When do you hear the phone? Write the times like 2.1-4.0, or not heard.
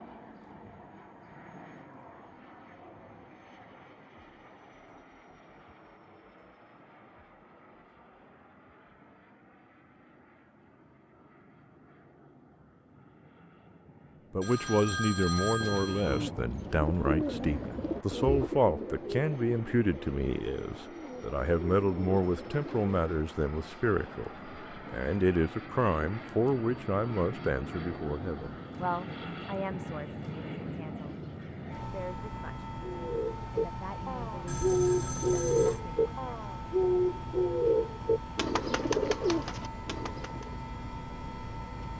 14.4-16.3, 34.5-35.8.